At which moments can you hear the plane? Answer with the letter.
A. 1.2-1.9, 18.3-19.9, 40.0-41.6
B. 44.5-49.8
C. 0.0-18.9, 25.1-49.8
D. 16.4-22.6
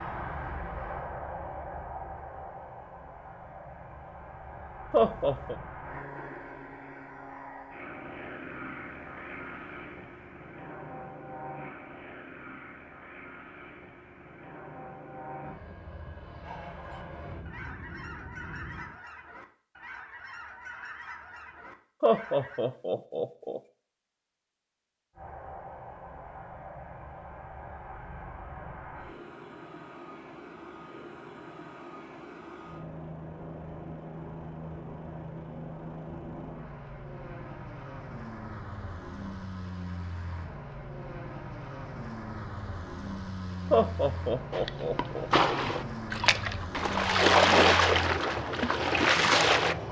C.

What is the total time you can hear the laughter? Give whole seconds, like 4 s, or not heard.
4 s.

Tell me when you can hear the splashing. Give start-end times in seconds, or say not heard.
44.5-49.8.